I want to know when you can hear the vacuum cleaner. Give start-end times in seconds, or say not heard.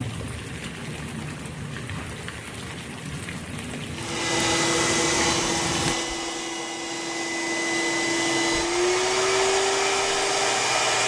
3.9-11.0.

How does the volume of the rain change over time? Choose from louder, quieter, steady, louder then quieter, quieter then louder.
steady.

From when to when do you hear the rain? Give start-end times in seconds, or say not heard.
0.0-6.0.